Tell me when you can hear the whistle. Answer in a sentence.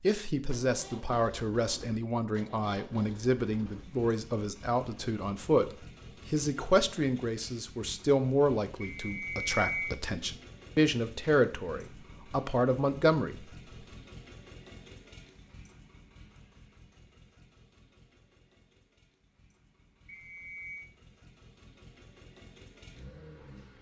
You can hear the whistle from 8.8 to 9.9 s and from 20.1 to 20.9 s.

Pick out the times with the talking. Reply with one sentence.
The talking can be heard from 0.0 to 13.6 s.